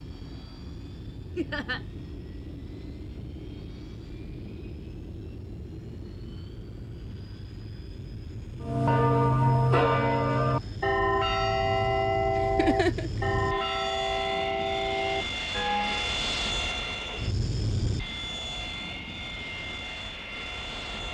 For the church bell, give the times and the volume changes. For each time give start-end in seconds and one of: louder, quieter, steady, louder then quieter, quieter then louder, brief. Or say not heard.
8.6-16.2 quieter.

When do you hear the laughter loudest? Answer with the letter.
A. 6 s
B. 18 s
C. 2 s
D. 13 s
D.